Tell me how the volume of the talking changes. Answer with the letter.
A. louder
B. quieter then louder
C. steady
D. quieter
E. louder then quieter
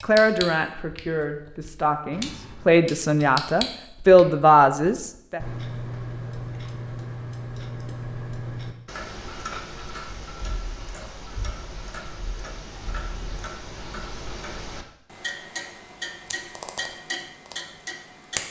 A.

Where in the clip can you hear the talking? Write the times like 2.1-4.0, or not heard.
0.0-5.4.